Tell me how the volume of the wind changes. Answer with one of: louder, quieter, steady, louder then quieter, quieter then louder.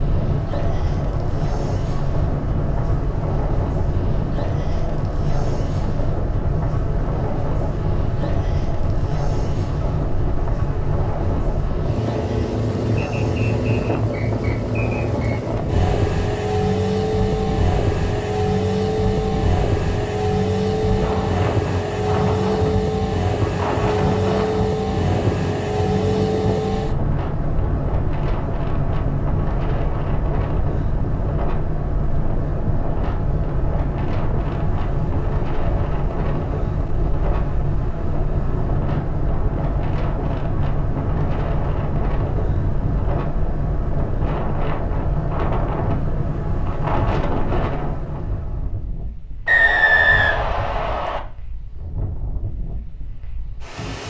steady.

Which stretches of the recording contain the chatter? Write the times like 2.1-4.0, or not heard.
not heard.